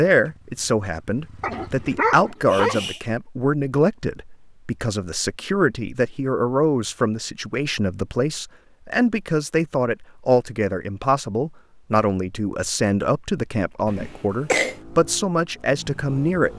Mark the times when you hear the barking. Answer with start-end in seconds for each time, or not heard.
1.4-3.0.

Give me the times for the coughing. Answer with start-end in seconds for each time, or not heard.
13.8-14.8.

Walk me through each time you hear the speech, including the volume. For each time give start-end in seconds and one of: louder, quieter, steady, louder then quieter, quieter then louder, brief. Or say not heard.
0.0-16.5 steady.